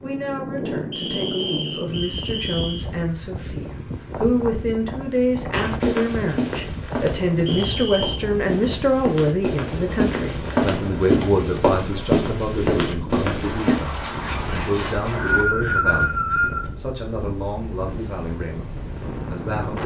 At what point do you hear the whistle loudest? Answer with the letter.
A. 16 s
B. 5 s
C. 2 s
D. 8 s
A.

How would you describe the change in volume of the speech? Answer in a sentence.
The volume of the speech goes up, then down.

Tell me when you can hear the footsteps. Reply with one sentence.
You can hear the footsteps from 5.5 to 13.8 s.